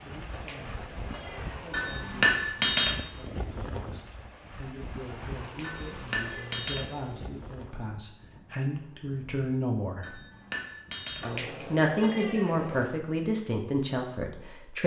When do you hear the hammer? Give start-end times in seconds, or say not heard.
1.7-3.0, 5.6-6.8, 10.0-11.2.